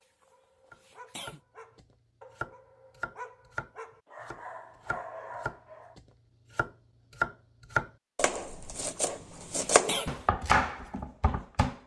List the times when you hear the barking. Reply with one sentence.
The barking can be heard from 0.0 to 6.0 s.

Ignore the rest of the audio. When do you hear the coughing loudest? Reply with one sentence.
The loudest moment of the coughing is at 10 seconds.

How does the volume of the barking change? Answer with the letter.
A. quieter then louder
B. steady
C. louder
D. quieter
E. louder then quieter
C.